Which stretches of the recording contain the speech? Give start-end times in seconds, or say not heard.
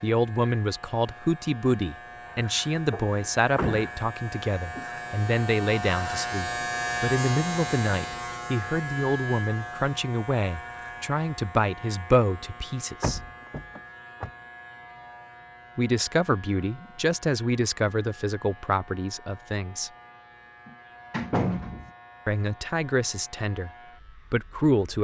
0.0-13.2, 15.8-19.9, 22.2-24.9.